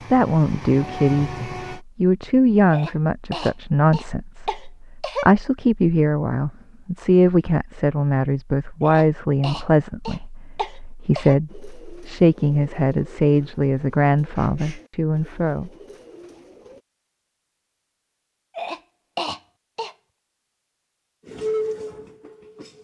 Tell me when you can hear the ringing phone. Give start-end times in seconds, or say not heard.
not heard.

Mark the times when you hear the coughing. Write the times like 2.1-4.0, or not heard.
2.7-5.3, 8.8-11.4, 18.6-19.9.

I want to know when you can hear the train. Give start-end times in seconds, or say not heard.
0.0-1.8, 21.2-22.7.